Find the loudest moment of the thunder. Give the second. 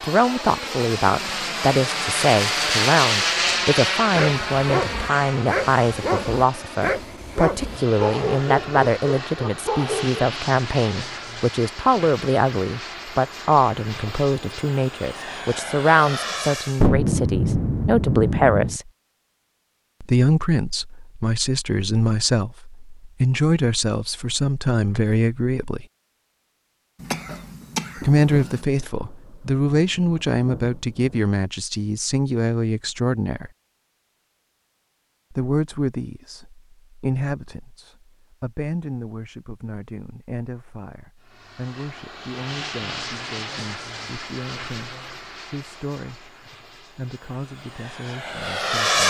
17 s.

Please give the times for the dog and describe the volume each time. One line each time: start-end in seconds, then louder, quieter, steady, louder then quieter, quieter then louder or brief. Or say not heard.
4.1-10.2 steady.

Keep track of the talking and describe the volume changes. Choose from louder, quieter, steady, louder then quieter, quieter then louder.
quieter.